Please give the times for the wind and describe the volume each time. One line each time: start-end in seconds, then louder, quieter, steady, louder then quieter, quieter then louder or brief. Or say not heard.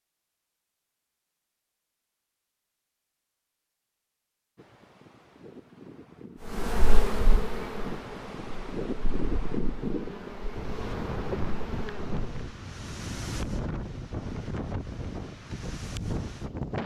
4.5-16.8 louder.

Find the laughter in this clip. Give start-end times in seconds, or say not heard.
not heard.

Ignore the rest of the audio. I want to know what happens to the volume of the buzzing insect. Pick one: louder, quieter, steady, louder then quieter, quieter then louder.
quieter then louder.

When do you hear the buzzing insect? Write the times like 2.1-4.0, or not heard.
6.5-12.5.